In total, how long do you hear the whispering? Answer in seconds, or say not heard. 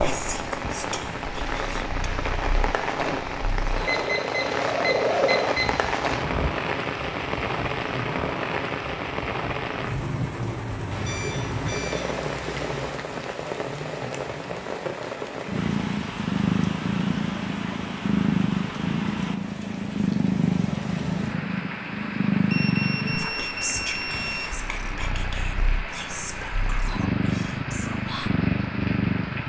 7 s.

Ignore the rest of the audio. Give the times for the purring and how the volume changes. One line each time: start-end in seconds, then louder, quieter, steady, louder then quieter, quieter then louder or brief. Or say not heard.
0.0-6.5 louder
15.4-29.4 quieter then louder.